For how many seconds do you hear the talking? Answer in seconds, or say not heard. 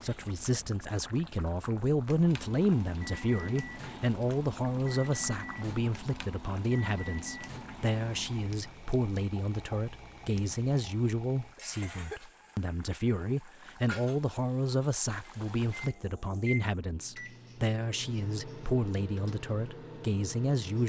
21 s.